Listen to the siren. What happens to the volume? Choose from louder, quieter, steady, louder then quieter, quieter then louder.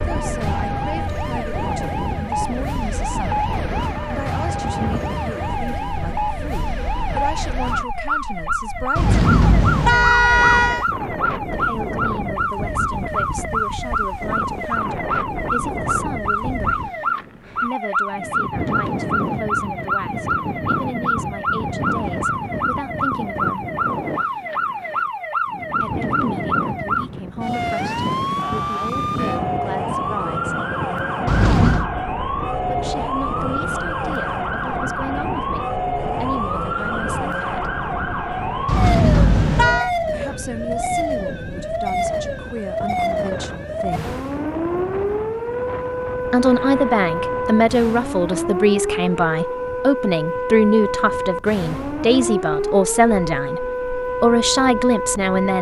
steady.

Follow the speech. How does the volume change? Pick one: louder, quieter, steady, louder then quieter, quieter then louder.
louder.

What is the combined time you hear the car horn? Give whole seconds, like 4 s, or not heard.
4 s.